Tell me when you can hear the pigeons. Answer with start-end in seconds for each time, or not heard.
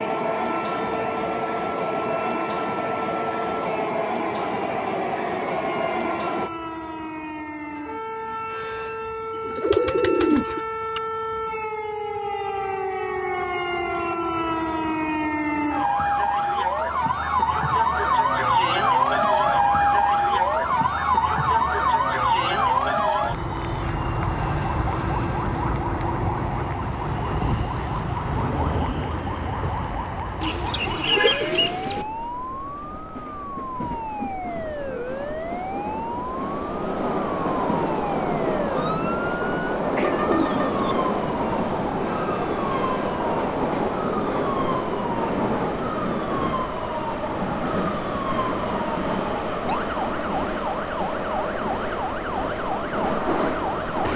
9.3-11.0, 30.4-32.0, 39.8-41.0.